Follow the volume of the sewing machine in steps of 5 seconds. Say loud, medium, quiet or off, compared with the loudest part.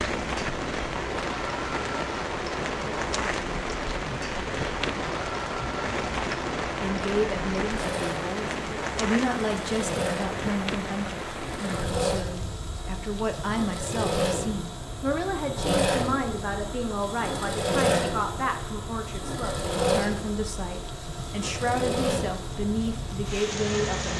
medium, medium, loud, loud, medium.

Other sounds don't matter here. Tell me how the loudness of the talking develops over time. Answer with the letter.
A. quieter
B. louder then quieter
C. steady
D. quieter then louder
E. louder
C.